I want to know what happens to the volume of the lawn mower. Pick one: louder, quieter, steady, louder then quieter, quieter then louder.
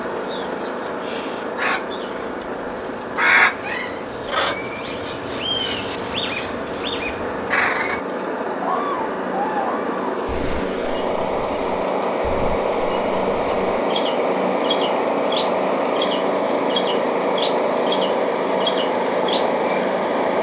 louder.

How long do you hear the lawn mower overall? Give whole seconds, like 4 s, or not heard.
20 s.